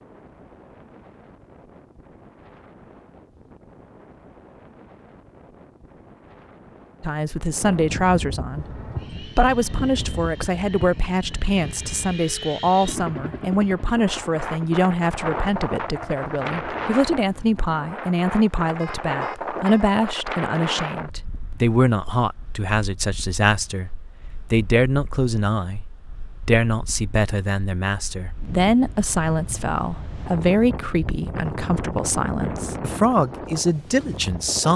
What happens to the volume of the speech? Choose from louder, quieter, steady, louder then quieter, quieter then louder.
steady.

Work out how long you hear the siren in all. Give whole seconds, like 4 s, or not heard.
not heard.